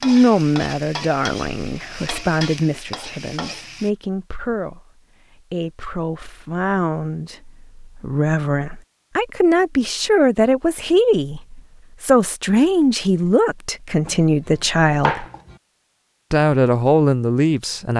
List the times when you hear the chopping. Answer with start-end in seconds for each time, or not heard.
14.1-15.6.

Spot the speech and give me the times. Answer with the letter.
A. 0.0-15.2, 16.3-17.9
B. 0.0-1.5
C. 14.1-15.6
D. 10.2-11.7
A.